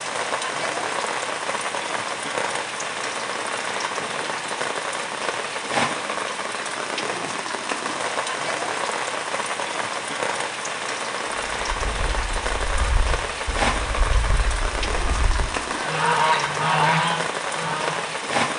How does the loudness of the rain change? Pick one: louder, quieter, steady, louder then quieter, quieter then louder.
steady.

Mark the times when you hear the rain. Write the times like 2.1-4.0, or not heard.
0.0-18.5.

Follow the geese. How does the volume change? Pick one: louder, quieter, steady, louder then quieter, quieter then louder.
louder.